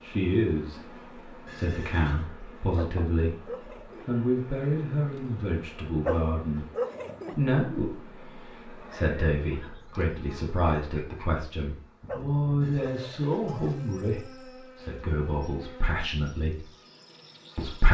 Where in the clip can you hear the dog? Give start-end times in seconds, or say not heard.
2.8-4.2, 6.0-7.4, 12.1-13.3.